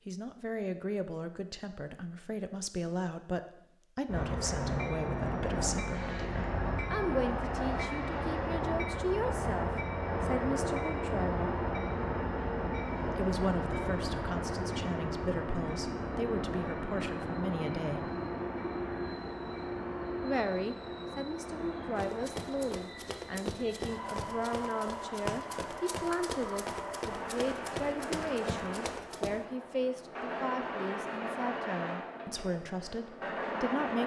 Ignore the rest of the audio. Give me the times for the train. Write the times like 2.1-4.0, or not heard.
4.0-34.0.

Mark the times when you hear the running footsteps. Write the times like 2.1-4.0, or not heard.
21.9-29.4.